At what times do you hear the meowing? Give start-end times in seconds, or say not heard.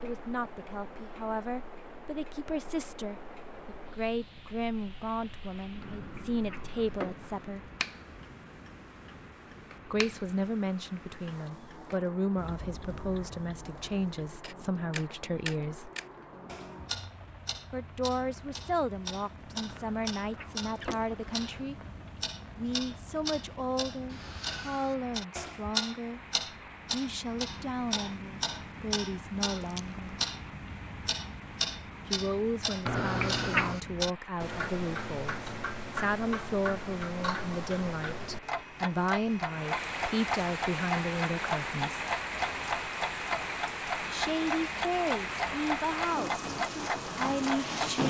5.8-7.5, 19.6-21.7, 32.9-33.8.